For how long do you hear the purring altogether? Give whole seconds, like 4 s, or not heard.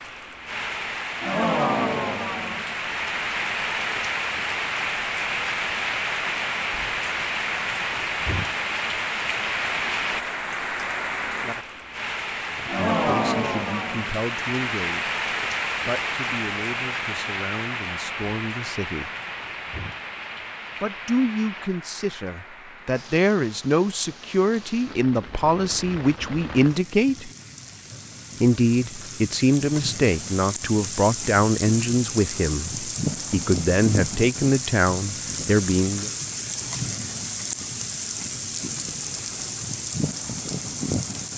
not heard.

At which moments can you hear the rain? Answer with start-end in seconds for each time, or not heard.
0.0-41.3.